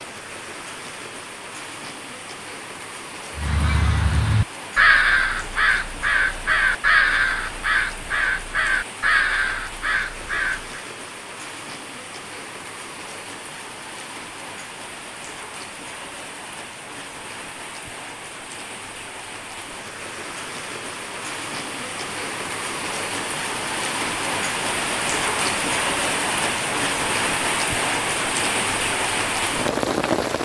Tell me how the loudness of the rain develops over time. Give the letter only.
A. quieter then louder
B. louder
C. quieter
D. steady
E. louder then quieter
B.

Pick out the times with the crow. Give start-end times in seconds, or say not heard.
3.4-10.8.